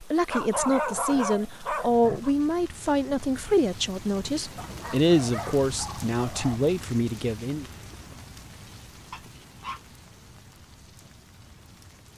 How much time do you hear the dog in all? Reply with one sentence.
The dog can be heard for 5 seconds in total.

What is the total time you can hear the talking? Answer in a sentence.
You can hear the talking for 8 seconds altogether.